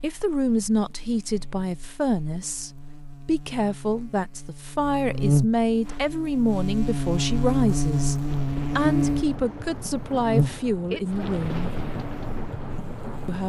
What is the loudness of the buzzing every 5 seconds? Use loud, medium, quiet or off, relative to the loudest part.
quiet, loud, medium.